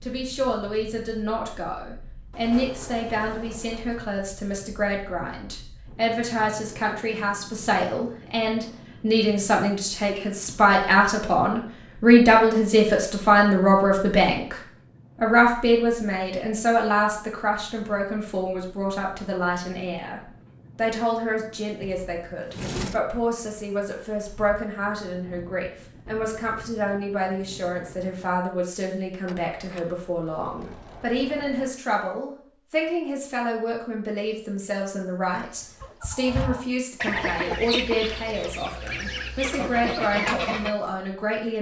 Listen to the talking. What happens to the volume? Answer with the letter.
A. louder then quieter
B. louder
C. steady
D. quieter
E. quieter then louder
A.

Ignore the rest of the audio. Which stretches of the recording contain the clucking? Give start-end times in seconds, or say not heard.
35.6-40.8.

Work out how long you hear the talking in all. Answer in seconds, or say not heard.
41 s.